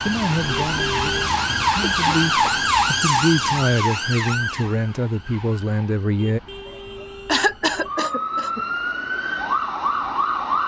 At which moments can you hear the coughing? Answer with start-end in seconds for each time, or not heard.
1.8-2.7, 6.7-8.7.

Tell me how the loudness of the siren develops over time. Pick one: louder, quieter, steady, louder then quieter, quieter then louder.
quieter then louder.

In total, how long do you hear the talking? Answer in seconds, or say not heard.
6 s.